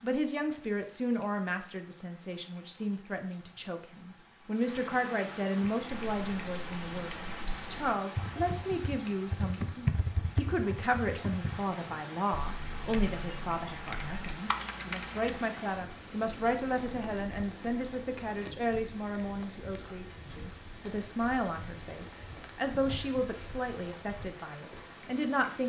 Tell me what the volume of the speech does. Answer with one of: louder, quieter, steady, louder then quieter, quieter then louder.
steady.